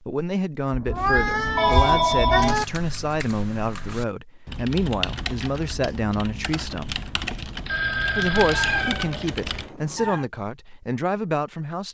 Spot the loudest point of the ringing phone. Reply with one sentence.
The volume of the ringing phone peaks at 2 seconds.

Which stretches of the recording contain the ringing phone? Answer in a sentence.
The ringing phone can be heard from 1.6 to 2.5 s and from 7.7 to 9.0 s.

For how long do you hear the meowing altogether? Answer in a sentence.
The meowing can be heard for 4 seconds in total.